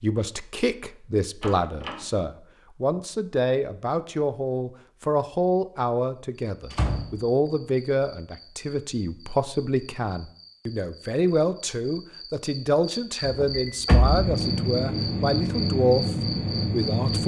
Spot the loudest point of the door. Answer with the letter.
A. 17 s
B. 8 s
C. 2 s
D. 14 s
D.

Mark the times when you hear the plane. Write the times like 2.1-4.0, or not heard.
13.9-17.2.